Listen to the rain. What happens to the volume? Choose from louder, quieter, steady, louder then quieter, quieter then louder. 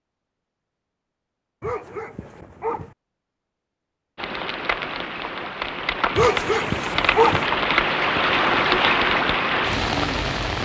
louder.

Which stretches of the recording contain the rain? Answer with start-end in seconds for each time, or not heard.
4.2-10.6.